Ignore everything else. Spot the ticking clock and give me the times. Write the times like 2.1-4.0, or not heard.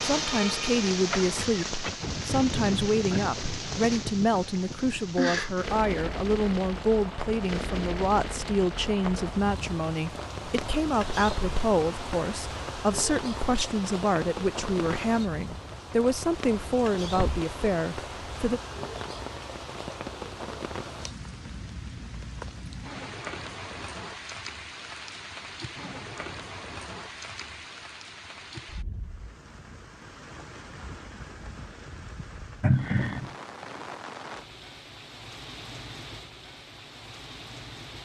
not heard.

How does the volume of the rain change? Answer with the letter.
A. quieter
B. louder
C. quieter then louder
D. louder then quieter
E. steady
A.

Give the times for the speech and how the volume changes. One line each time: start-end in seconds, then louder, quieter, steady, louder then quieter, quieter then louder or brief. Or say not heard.
0.0-18.6 steady.